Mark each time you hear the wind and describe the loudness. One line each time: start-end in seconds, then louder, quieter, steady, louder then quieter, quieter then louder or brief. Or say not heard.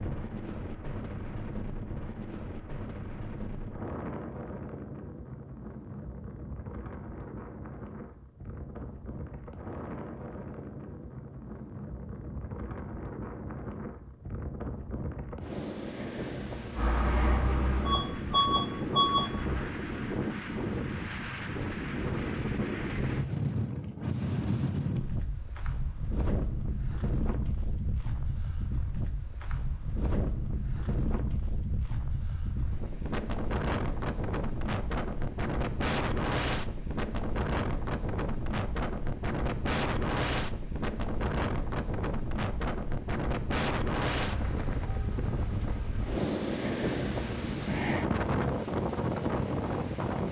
0.0-50.2 louder.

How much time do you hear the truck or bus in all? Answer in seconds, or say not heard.
3 s.